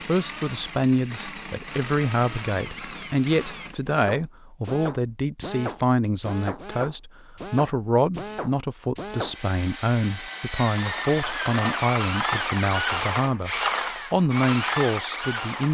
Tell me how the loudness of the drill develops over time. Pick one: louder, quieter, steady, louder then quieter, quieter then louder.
louder.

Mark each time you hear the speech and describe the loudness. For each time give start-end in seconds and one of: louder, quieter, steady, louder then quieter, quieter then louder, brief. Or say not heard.
0.1-15.6 steady.